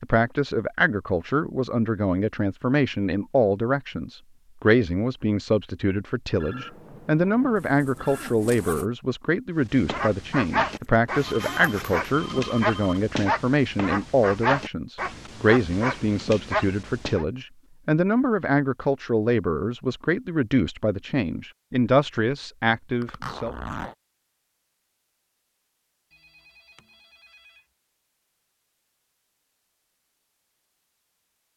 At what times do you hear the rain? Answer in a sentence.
You can't hear the rain here.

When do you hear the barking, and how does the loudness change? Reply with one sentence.
The barking can be heard from 9.7 to 17.2 s, at a steady volume.